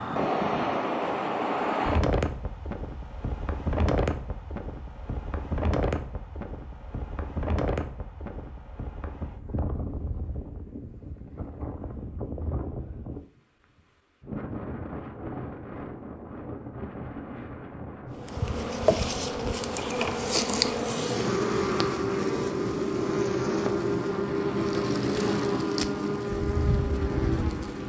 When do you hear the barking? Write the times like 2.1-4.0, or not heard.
not heard.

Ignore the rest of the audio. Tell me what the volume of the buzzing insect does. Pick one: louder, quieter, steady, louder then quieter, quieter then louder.
steady.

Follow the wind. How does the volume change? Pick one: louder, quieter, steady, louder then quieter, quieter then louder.
quieter.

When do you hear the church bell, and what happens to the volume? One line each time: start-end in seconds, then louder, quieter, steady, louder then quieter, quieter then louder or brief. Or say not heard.
not heard.